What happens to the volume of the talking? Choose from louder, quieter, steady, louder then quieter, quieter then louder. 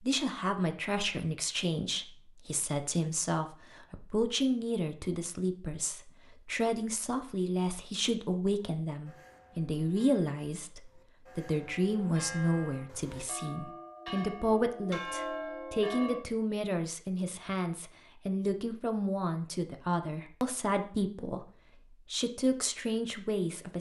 steady.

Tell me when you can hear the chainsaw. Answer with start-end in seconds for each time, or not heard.
not heard.